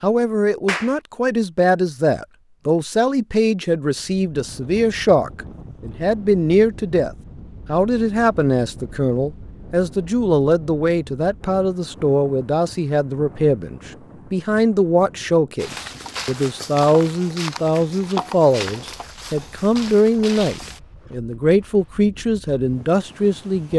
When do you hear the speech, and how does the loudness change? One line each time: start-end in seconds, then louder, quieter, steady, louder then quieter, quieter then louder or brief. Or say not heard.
0.0-23.7 steady.